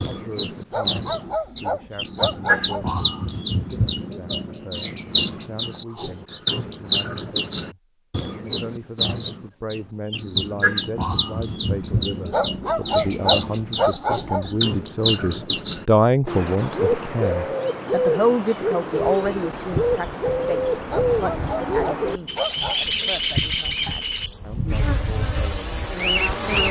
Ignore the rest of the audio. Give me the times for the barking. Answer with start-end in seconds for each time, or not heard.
0.7-3.0, 12.3-14.6, 20.9-22.9.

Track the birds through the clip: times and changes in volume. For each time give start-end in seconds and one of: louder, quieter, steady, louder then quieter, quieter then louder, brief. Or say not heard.
0.0-26.6 steady.